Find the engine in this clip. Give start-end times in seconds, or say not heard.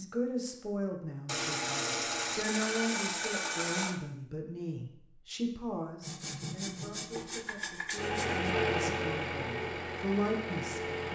8.0-11.1.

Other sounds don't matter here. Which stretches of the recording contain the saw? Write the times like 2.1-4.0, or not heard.
1.2-4.0, 6.0-8.5.